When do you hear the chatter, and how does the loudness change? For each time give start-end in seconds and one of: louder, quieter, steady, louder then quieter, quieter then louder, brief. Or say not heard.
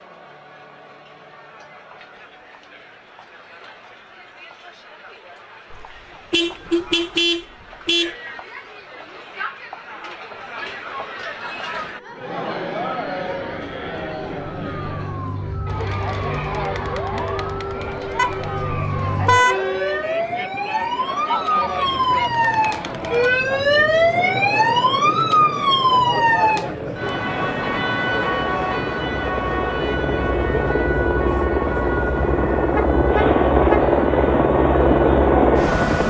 0.0-36.0 louder.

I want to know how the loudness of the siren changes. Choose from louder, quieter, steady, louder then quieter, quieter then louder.
louder then quieter.